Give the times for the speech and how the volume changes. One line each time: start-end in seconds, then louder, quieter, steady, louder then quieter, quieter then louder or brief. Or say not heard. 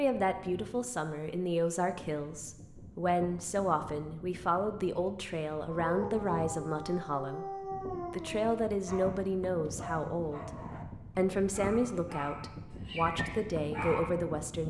0.0-14.6 steady.